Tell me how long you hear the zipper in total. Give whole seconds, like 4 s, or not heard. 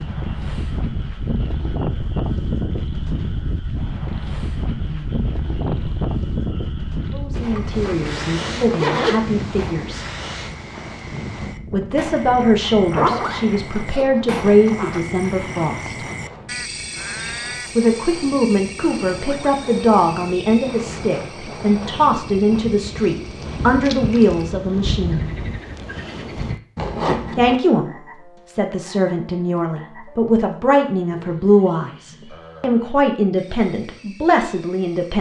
5 s.